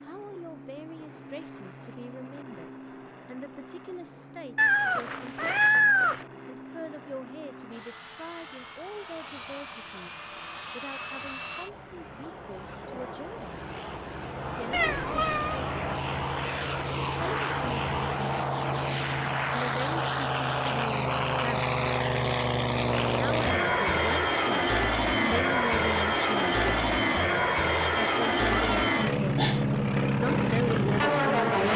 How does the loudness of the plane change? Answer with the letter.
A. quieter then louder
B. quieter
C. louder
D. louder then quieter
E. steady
C.